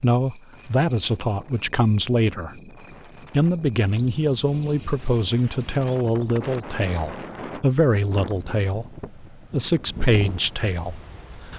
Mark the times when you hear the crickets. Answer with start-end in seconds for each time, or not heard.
0.0-6.5.